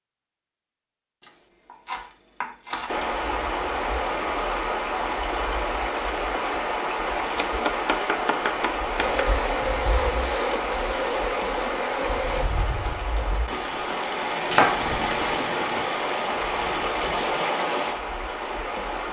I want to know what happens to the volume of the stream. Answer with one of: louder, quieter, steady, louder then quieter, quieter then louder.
steady.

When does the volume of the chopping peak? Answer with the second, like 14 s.
15 s.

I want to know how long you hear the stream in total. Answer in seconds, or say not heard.
16 s.